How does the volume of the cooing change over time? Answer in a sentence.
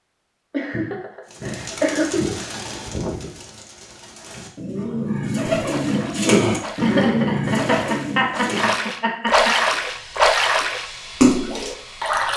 The volume of the cooing goes down, then up.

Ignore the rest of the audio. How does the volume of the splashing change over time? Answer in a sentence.
The loudness of the splashing goes up.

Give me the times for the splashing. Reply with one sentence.
You can hear the splashing from 5.5 to 12.3 s.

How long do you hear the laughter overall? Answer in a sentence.
You can hear the laughter for 5 seconds altogether.